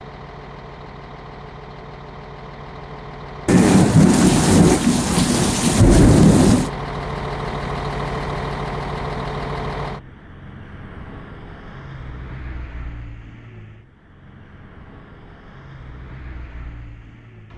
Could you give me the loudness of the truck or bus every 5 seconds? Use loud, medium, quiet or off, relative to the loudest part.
medium, loud, quiet, quiet.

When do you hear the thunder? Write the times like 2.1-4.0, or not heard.
3.5-6.7.